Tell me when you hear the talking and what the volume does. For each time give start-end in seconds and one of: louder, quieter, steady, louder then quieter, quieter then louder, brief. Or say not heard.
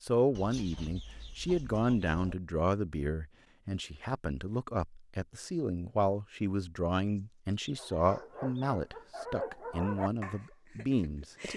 0.0-11.5 steady.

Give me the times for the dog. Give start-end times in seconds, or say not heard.
7.8-11.5.